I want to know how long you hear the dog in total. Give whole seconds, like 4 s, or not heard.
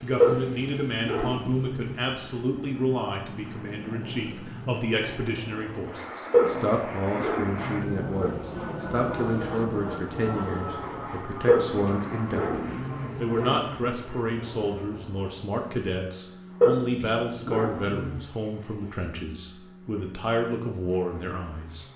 8 s.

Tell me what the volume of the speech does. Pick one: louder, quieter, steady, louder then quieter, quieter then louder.
steady.